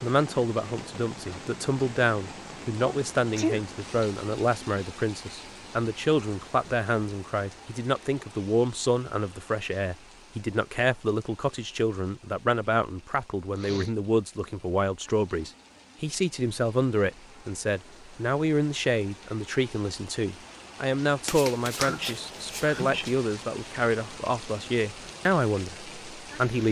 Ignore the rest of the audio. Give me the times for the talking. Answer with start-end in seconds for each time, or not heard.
0.0-26.6.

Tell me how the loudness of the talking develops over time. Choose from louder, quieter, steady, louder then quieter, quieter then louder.
steady.